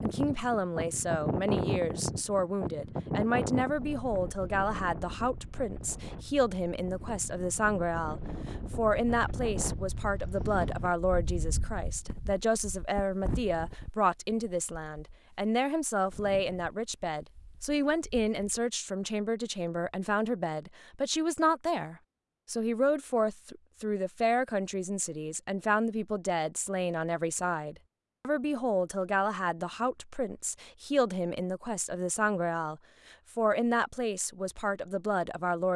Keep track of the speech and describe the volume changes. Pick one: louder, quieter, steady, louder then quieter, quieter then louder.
steady.